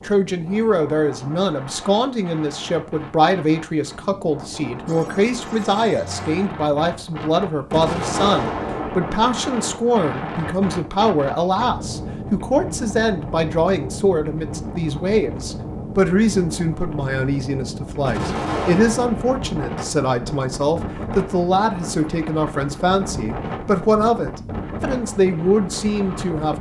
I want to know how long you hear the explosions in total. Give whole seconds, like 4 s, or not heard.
3 s.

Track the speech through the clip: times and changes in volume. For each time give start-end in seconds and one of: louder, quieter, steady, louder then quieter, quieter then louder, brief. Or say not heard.
0.0-26.5 steady.